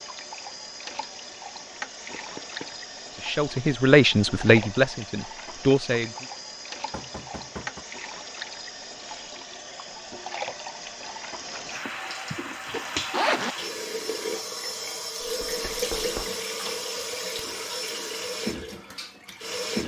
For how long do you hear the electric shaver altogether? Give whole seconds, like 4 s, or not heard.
not heard.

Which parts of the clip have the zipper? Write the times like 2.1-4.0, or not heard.
11.5-13.6.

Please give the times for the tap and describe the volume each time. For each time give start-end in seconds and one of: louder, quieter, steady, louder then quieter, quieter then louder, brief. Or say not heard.
0.0-19.8 louder.